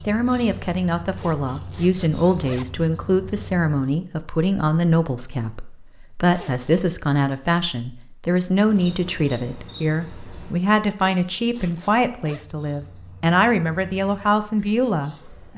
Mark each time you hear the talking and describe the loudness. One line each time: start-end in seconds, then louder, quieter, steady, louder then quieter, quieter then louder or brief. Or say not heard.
0.0-15.5 steady.